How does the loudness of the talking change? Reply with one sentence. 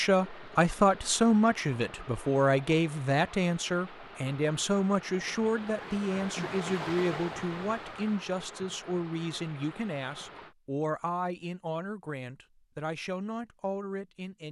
The loudness of the talking goes down.